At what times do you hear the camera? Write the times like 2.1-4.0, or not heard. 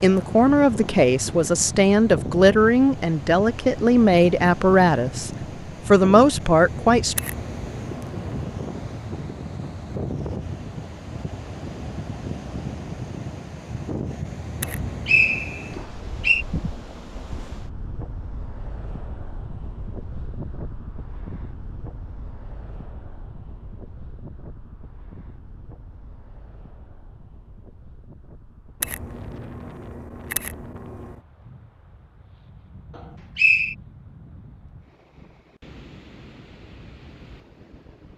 7.2-8.6, 14.6-15.4, 28.8-31.2.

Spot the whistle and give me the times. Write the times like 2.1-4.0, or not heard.
14.7-16.4, 33.0-33.8.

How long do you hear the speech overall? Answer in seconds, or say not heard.
7 s.